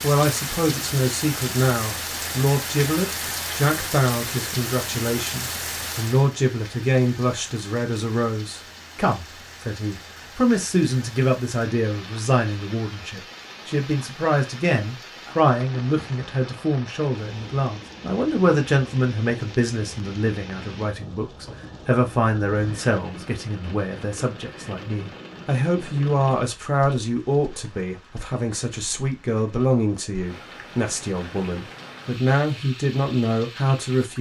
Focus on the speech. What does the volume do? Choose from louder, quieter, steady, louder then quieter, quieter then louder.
steady.